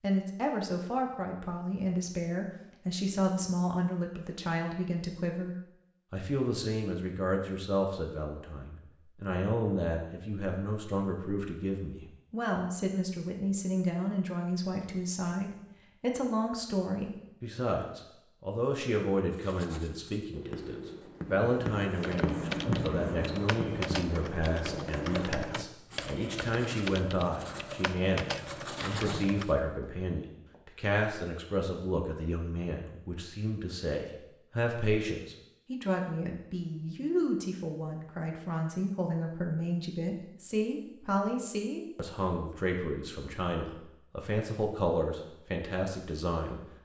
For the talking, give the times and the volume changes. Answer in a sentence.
You can hear the talking from 0.0 to 46.6 s, at a steady volume.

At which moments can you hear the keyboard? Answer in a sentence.
The keyboard can be heard from 22.0 to 29.6 s.